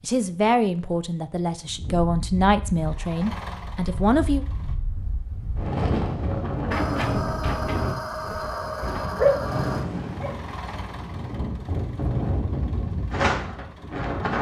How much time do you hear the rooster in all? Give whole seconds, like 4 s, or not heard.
3 s.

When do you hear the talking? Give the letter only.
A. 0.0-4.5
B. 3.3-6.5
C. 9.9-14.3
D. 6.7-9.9
A.